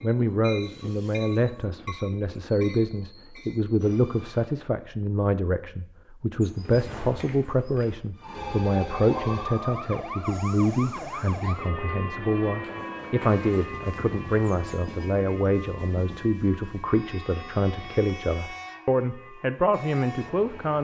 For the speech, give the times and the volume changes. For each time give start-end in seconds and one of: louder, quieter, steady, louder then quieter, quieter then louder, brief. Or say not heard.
0.0-20.7 steady.